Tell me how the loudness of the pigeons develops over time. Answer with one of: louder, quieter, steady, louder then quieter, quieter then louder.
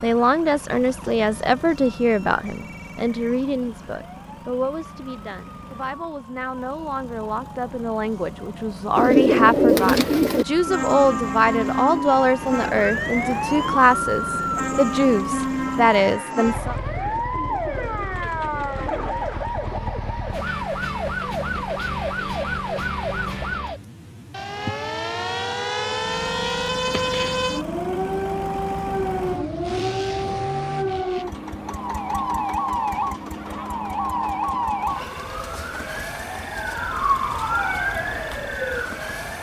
quieter.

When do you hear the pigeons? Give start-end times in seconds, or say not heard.
8.9-19.9.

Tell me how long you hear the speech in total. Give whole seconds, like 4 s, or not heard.
17 s.